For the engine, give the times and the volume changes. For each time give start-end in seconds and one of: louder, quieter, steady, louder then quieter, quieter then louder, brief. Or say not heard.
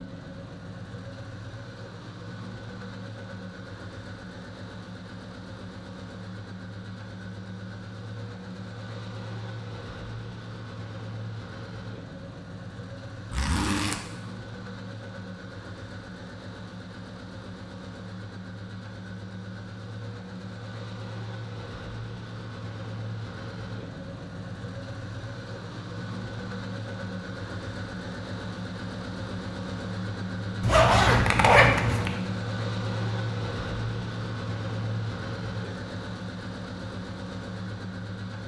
0.0-38.4 louder.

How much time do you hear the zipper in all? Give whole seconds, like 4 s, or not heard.
2 s.